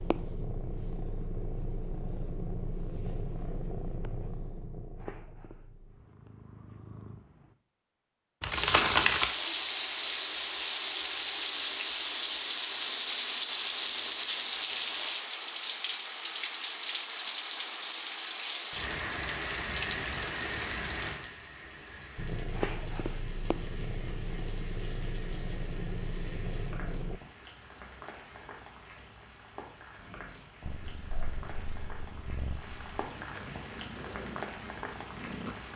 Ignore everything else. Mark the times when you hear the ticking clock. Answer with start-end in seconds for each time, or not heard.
not heard.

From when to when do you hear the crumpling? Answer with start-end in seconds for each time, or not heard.
8.4-9.3.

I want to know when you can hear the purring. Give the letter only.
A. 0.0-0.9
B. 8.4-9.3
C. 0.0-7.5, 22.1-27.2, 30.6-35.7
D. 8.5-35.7
C.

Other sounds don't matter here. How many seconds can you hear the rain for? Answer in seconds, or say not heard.
27 s.